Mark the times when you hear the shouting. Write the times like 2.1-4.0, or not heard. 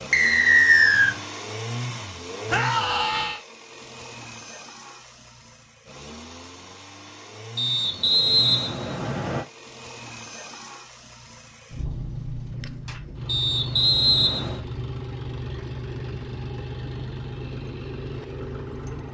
2.5-3.4.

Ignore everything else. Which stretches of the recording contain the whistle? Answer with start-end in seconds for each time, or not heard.
0.1-1.1, 7.5-9.4, 13.2-14.6.